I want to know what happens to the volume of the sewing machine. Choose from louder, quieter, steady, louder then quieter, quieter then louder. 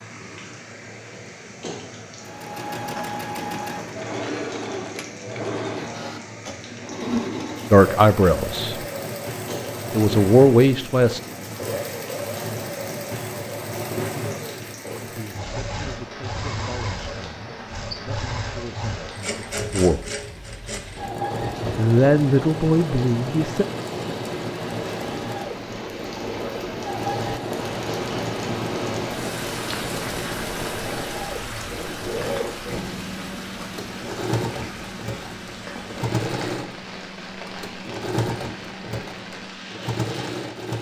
steady.